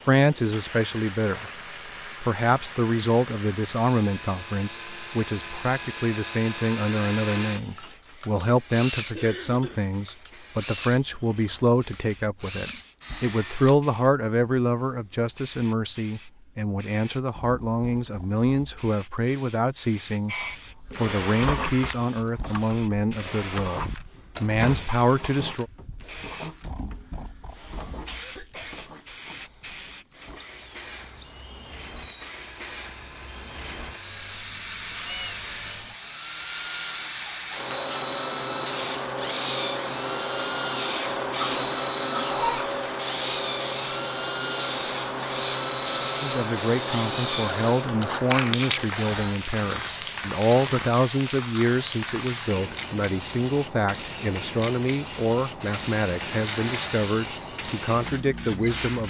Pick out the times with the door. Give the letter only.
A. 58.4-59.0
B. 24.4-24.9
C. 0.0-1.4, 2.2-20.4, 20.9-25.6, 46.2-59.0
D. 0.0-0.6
B.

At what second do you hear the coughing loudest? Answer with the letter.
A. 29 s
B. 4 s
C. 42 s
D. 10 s
C.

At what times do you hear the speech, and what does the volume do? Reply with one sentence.
The speech can be heard briefly from 0.0 to 1.4 s; from 2.2 to 20.4 s, at a steady volume; from 20.9 to 25.6 s, getting quieter then louder; and from 46.2 to 59.0 s, at a steady volume.